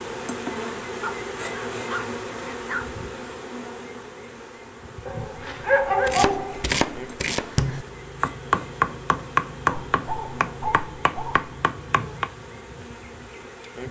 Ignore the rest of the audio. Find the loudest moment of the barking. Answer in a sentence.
The loudest moment of the barking is at 6 seconds.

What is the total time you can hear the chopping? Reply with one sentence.
You can hear the chopping for 6 seconds altogether.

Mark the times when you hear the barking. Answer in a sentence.
You can hear the barking from 1.0 to 2.9 s, from 5.0 to 6.7 s and from 9.7 to 11.6 s.